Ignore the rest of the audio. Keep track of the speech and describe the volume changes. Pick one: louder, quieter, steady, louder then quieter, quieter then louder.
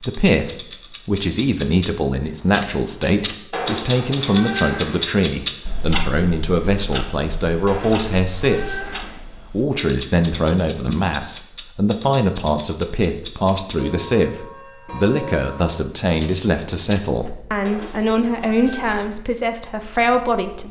steady.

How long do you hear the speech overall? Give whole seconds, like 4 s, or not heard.
20 s.